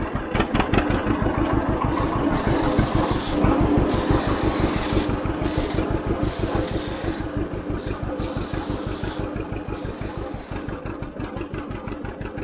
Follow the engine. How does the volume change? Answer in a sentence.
The loudness of the engine goes down.